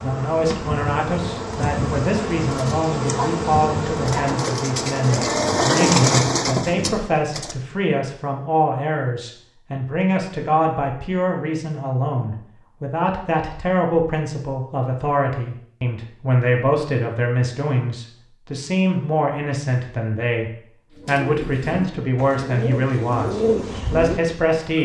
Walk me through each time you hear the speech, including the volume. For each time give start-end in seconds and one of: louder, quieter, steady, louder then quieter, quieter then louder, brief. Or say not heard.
0.0-24.7 steady.